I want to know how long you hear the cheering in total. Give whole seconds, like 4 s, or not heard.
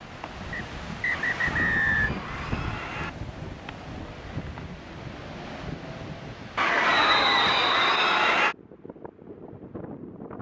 4 s.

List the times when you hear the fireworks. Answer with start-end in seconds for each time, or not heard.
not heard.